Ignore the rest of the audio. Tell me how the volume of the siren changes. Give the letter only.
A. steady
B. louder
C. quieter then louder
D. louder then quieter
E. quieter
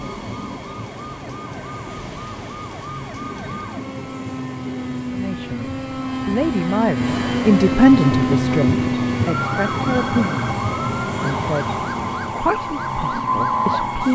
D.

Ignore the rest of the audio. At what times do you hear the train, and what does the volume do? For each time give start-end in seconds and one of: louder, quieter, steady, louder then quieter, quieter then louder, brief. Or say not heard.
0.0-14.0 louder.